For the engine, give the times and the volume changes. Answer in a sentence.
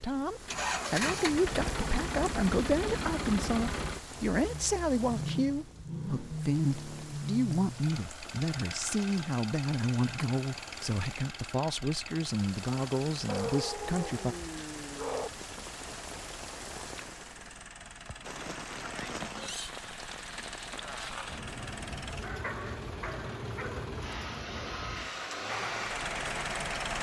The engine can be heard from 0.0 to 26.9 s, getting quieter then louder.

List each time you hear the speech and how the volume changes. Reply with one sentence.
You can hear the speech from 0.0 to 14.3 s, at a steady volume.